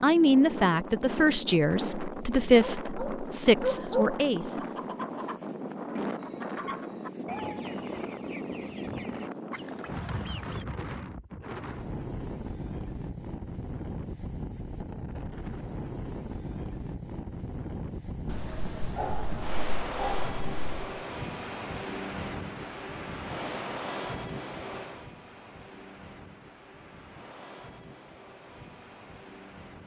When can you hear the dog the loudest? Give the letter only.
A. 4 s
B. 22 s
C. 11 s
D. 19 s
A.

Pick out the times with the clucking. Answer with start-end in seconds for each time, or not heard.
3.6-10.7.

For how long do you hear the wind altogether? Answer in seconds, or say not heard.
30 s.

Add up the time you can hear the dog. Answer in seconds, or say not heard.
4 s.